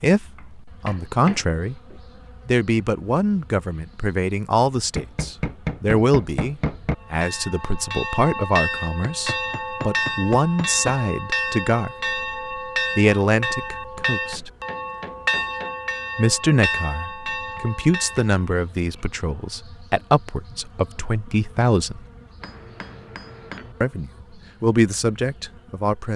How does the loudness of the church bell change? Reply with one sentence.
The volume of the church bell stays about the same.